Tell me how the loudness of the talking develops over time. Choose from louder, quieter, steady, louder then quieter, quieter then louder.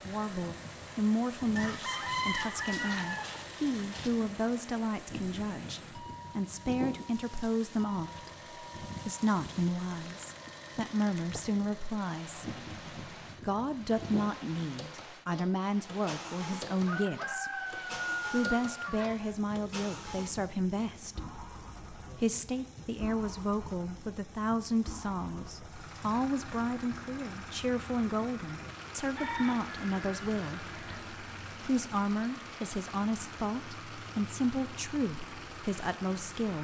steady.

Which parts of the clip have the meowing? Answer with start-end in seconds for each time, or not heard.
not heard.